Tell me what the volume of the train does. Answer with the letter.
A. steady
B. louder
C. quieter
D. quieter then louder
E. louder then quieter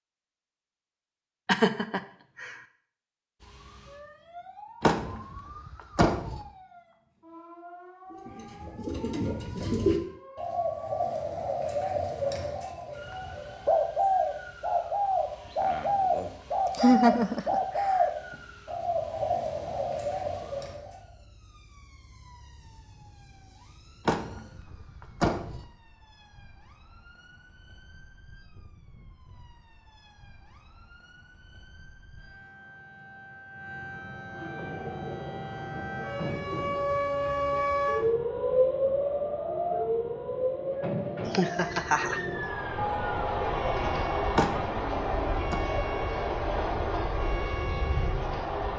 D.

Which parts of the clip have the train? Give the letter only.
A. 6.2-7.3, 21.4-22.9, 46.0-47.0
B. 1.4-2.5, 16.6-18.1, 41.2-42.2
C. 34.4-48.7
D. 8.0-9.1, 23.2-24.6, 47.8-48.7
C.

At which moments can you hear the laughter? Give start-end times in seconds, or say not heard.
1.4-2.5, 16.6-18.1, 41.2-42.2.